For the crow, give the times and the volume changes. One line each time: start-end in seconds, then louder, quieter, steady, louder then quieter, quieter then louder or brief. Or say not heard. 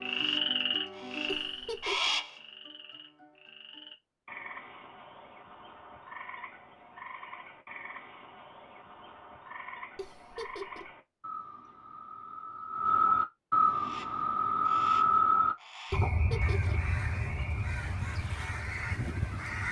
0.0-2.4 brief
13.7-19.6 louder.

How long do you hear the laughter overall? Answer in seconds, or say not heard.
3 s.